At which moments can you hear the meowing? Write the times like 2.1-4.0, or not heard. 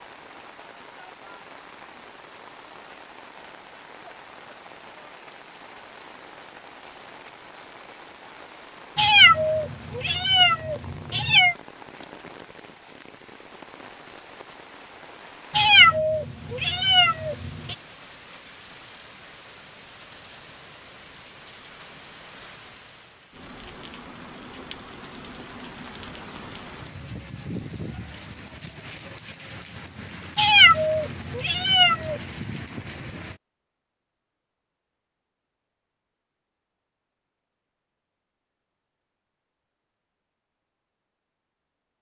8.9-11.6, 15.5-17.8, 30.4-32.2.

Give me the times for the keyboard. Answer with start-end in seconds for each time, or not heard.
not heard.